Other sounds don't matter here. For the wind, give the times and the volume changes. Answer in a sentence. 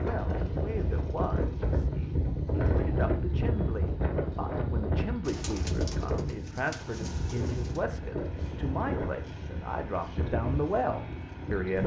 The wind can be heard from 0.0 to 11.8 s, getting quieter.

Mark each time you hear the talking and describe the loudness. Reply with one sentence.
You can hear the talking from 0.0 to 11.8 s, getting louder.